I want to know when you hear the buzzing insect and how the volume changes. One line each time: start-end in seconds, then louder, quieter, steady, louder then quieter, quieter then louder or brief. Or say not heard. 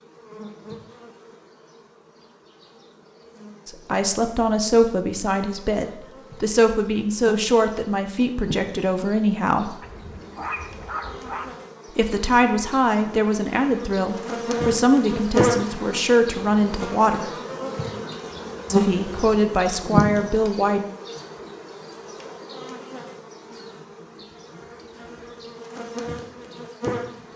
0.0-27.3 louder then quieter.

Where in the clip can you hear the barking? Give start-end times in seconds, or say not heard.
9.8-11.6.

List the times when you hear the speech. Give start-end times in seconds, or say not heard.
3.6-9.8, 11.9-17.3, 18.7-20.9.